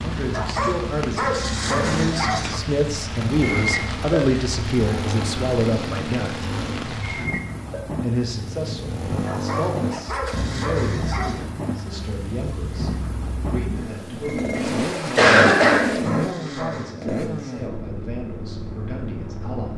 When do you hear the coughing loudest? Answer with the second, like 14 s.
15 s.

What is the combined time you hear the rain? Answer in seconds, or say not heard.
16 s.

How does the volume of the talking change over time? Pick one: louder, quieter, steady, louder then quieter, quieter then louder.
quieter.